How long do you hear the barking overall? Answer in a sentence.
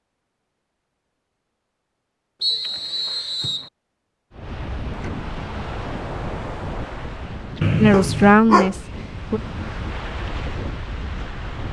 You can hear the barking for 2 seconds altogether.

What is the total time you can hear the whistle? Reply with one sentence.
You can hear the whistle for 2 seconds altogether.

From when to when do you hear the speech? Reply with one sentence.
The speech can be heard from 7.8 to 9.4 s.